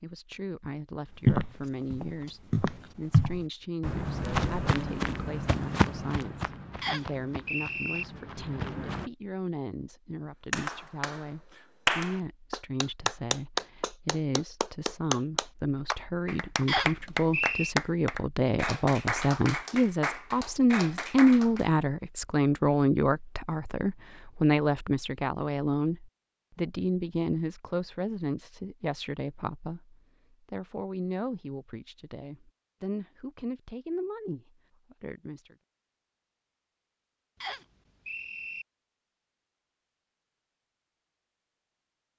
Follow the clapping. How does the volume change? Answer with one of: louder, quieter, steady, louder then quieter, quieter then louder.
quieter.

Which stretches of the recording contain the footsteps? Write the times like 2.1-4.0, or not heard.
1.2-9.1.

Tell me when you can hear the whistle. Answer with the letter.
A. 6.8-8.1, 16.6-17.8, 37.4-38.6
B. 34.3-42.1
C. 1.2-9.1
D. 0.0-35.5
A.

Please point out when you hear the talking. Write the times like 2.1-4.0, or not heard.
0.0-35.5.